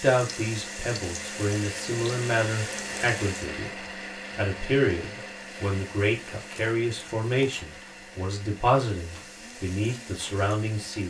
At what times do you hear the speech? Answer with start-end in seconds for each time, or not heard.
0.0-3.7, 4.3-11.0.